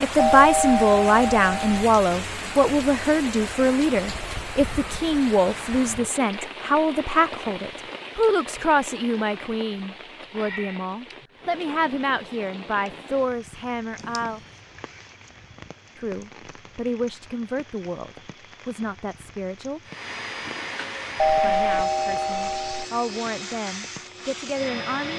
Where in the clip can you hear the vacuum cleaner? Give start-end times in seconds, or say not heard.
19.8-25.1.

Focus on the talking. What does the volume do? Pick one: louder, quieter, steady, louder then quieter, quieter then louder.
quieter.